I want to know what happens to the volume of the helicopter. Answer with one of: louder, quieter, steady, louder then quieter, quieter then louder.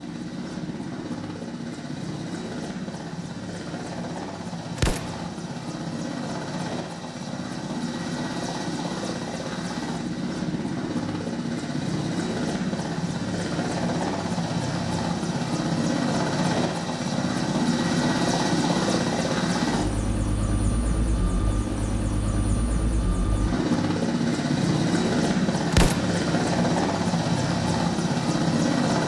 louder.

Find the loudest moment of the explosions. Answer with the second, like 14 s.
26 s.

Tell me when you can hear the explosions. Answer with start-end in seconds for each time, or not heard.
4.8-5.2, 25.7-26.2.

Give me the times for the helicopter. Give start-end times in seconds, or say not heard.
0.0-29.0.